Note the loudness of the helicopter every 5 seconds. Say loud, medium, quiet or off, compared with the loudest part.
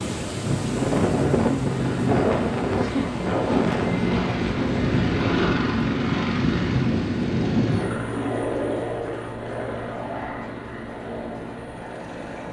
loud, loud, medium.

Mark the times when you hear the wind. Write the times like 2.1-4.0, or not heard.
0.0-8.1.